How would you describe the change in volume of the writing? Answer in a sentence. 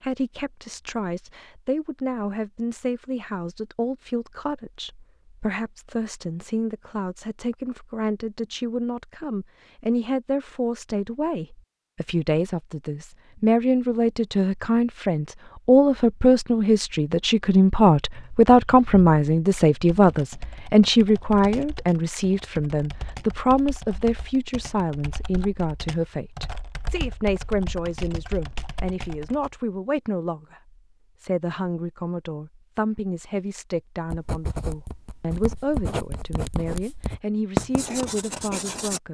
The loudness of the writing goes up, then down.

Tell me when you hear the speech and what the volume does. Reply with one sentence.
You can hear the speech from 0.0 to 39.1 s, getting louder then quieter.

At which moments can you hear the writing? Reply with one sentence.
You can hear the writing from 34.0 to 39.0 s.